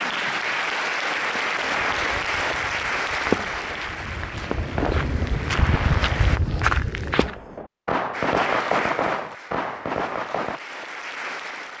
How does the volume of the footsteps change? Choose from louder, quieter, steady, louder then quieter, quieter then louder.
louder.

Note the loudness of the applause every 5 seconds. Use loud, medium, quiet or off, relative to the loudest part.
loud, medium, medium.